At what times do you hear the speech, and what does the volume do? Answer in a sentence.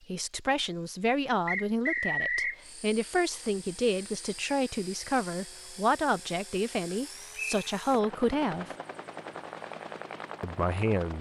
You can hear the speech from 0.1 to 8.7 s, at a steady volume; and briefly from 10.4 to 11.1 s.